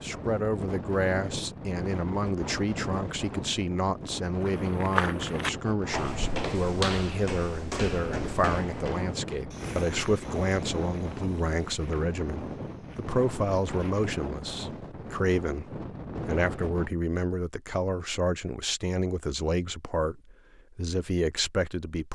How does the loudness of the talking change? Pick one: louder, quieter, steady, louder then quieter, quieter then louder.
steady.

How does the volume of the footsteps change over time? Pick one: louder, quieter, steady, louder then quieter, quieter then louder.
quieter.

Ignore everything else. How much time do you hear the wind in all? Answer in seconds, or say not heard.
17 s.